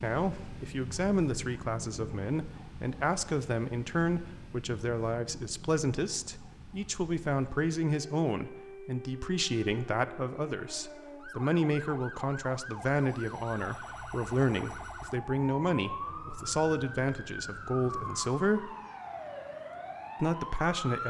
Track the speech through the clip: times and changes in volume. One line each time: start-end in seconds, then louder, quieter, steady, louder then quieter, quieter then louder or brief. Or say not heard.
0.0-18.8 steady
20.2-21.0 brief.